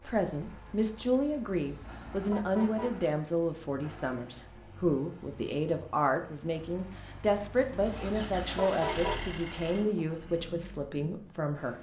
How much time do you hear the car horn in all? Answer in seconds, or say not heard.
3 s.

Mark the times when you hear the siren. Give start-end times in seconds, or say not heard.
not heard.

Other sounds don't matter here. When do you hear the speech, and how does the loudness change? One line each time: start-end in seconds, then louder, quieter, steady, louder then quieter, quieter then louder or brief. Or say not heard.
0.0-11.7 steady.